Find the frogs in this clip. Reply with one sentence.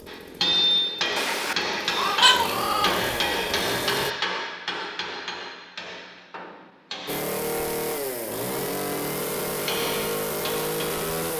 You can't hear the frogs here.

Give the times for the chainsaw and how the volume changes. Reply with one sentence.
The chainsaw can be heard from 0.0 to 4.2 s, getting louder; and from 7.0 to 11.3 s, at a steady volume.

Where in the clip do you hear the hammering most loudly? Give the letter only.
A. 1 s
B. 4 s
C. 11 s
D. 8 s
A.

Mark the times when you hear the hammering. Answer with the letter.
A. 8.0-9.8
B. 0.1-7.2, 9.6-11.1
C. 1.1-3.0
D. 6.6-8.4
B.